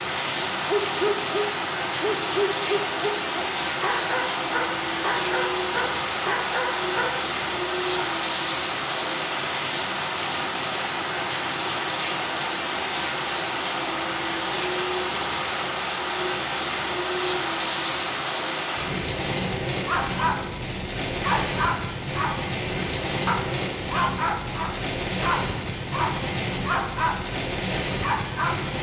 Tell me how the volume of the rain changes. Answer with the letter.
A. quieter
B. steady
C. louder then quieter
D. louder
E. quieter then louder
B.